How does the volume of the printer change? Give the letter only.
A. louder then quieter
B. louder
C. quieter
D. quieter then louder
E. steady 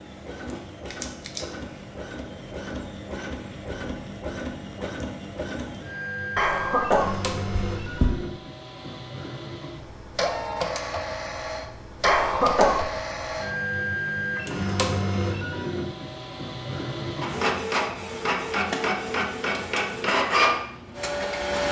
B.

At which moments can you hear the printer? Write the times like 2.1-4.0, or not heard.
0.0-21.6.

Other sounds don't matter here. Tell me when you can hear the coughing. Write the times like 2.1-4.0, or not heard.
6.3-8.2, 12.0-12.8.